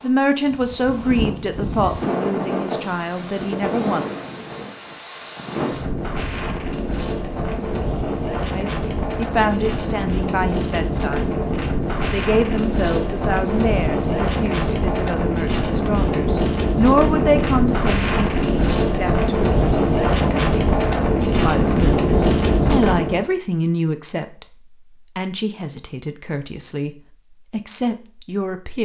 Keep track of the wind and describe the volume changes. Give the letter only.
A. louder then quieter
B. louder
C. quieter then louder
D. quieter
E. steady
B.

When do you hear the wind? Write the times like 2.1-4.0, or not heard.
0.0-23.2.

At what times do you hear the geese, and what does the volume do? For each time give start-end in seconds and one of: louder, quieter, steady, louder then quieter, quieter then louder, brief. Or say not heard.
not heard.